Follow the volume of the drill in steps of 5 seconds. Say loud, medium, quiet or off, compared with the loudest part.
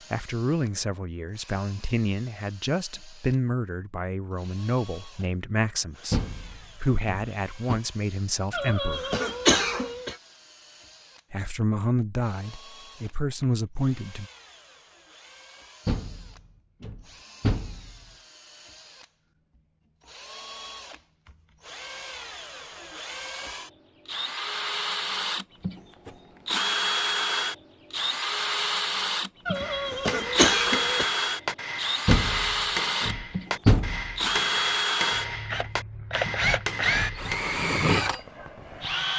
quiet, quiet, quiet, quiet, medium, loud, loud, loud.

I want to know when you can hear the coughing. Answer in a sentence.
You can hear the coughing from 8.5 to 10.2 s and from 29.4 to 31.1 s.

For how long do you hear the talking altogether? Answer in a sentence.
You can hear the talking for 12 seconds altogether.